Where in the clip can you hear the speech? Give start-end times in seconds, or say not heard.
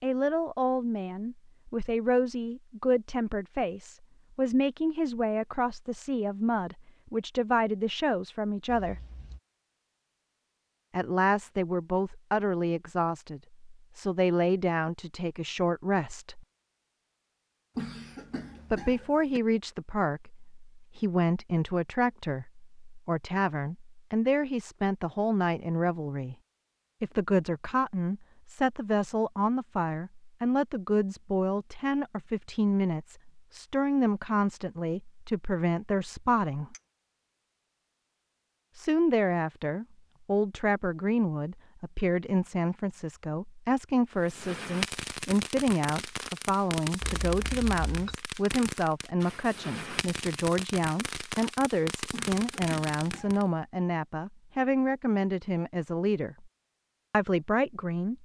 0.0-8.9, 10.9-16.4, 18.7-26.4, 27.0-36.8, 38.8-56.5, 57.1-58.2.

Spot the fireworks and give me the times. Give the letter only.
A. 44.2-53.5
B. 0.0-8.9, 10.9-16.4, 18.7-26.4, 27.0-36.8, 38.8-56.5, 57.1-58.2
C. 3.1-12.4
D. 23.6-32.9
A.